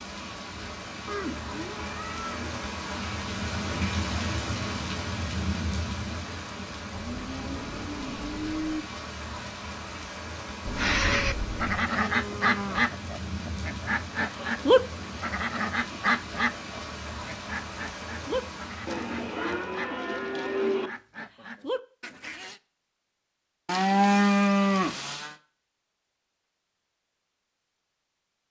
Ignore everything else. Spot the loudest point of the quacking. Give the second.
15 s.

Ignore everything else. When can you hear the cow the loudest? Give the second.
24 s.